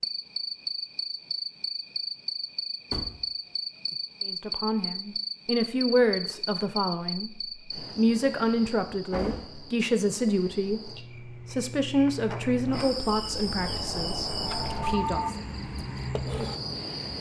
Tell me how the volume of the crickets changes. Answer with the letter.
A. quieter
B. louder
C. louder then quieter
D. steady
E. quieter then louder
E.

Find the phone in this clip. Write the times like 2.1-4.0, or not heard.
14.4-15.3.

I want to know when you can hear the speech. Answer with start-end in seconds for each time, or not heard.
4.2-15.4.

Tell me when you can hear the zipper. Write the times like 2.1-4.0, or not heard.
not heard.